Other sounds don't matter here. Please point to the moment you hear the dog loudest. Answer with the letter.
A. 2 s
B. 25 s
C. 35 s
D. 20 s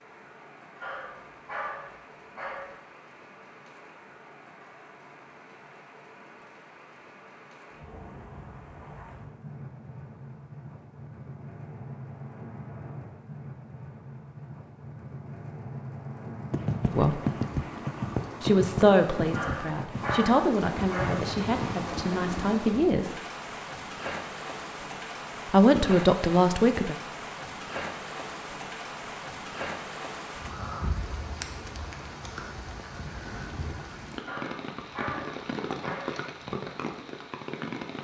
D.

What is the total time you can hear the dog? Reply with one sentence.
The dog can be heard for 6 seconds in total.